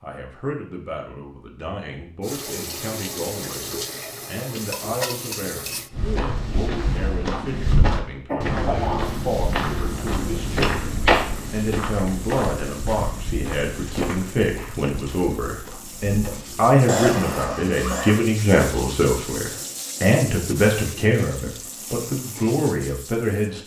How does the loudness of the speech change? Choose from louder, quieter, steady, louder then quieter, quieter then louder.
louder.